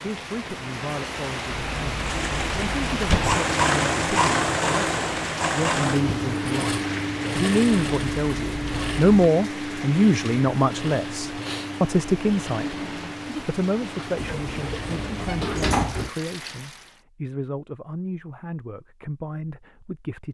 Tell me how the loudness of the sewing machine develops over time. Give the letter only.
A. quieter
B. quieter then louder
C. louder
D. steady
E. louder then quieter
A.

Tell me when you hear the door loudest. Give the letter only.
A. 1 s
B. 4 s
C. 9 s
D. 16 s
D.